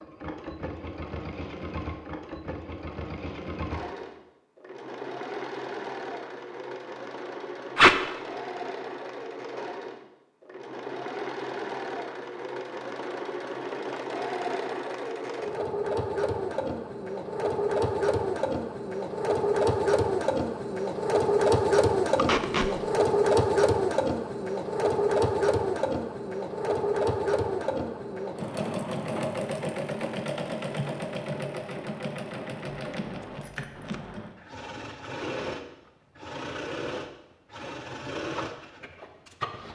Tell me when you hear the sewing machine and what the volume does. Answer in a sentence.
The sewing machine can be heard from 0.0 to 39.6 s, getting louder then quieter.